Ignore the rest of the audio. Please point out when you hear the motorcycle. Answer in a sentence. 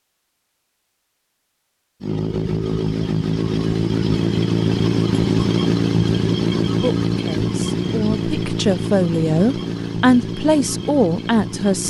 You can hear the motorcycle from 2.0 to 11.8 s.